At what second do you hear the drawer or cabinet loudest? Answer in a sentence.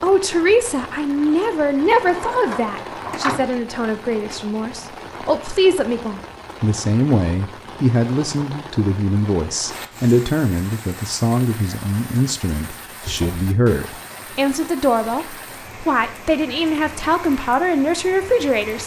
The volume of the drawer or cabinet peaks at 3 seconds.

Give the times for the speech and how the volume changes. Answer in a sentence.
The speech can be heard from 0.0 to 18.8 s, at a steady volume.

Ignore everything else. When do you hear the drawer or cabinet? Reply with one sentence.
The drawer or cabinet can be heard from 1.9 to 3.5 s and from 13.0 to 13.5 s.